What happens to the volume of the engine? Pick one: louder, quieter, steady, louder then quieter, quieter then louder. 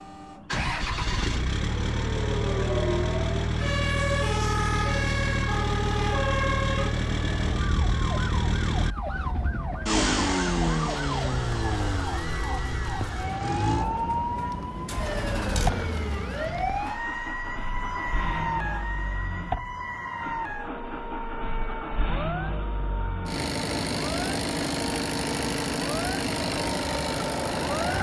quieter then louder.